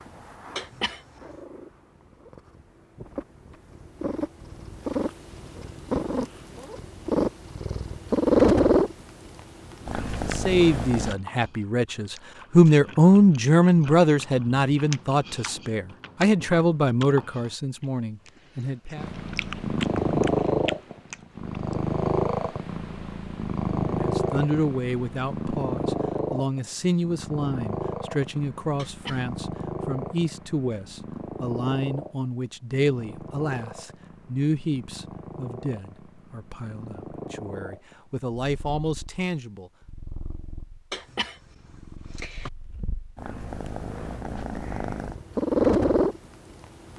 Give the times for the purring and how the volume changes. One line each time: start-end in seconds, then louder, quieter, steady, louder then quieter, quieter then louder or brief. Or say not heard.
0.0-11.2 louder then quieter
18.9-46.9 quieter then louder.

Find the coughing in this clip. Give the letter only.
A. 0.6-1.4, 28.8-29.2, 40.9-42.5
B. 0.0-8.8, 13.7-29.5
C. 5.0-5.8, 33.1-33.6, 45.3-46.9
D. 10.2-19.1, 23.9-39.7
A.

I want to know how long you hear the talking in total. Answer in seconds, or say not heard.
25 s.